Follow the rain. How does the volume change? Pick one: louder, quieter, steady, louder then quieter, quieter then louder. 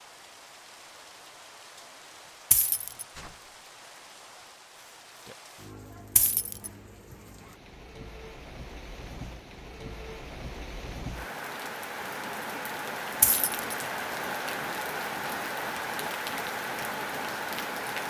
louder.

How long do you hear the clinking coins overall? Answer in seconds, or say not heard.
2 s.